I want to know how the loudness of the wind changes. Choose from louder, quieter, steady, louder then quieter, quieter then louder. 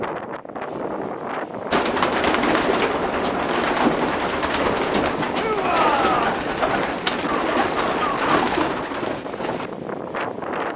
steady.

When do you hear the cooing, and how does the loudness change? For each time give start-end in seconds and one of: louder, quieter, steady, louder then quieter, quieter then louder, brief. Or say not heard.
1.7-9.7 steady.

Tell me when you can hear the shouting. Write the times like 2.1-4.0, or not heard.
5.3-6.2.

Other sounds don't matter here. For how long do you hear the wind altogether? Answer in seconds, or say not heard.
11 s.